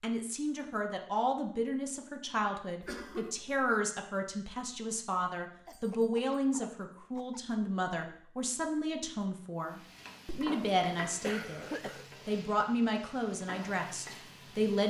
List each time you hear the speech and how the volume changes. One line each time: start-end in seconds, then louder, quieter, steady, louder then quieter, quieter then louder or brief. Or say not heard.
0.0-11.7 steady
12.2-14.8 brief.